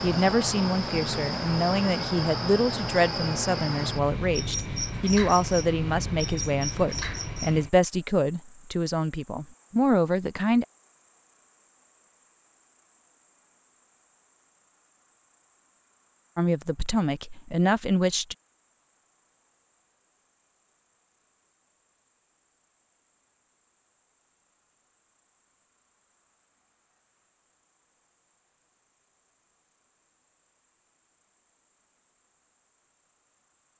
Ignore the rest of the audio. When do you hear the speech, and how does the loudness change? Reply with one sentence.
The speech can be heard from 0.0 to 10.7 s, at a steady volume; and briefly from 16.4 to 18.4 s.